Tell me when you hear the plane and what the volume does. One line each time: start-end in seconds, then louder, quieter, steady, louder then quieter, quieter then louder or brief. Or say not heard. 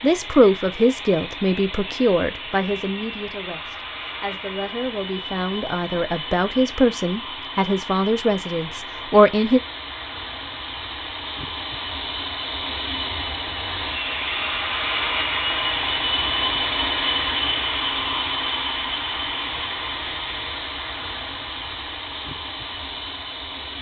0.0-23.7 louder then quieter.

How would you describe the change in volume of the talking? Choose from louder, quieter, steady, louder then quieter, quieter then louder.
quieter then louder.